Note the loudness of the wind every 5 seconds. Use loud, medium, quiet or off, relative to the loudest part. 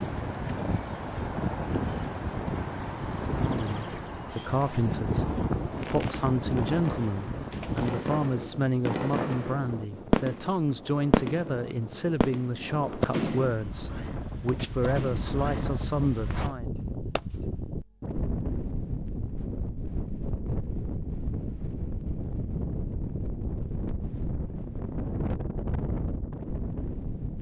loud, loud, medium, loud, loud, loud.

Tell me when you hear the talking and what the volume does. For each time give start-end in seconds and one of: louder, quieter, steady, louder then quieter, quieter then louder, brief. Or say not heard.
3.4-16.8 steady.